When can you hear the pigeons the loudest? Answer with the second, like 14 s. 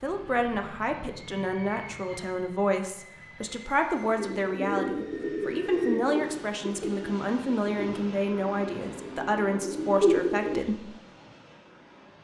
10 s.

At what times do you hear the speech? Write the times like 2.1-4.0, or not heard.
0.0-10.9.